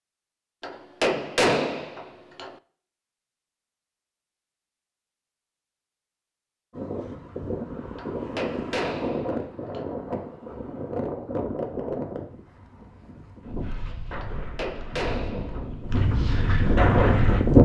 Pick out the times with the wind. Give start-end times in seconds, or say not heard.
6.7-17.6.